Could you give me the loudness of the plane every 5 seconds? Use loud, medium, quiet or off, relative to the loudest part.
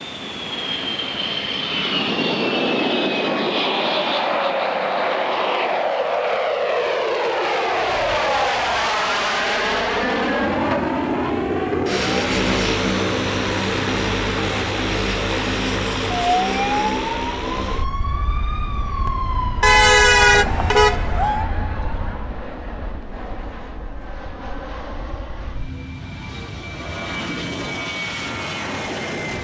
loud, loud, loud, medium, quiet, medium.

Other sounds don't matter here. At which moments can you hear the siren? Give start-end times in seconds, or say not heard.
7.7-22.4.